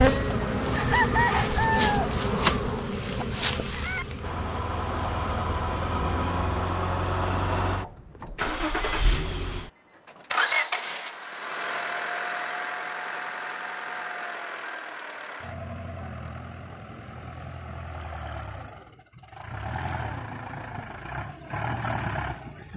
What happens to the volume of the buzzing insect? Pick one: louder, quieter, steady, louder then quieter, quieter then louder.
quieter.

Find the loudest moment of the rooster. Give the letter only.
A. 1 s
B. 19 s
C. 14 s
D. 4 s
A.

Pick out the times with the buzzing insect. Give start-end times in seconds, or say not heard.
0.0-6.5.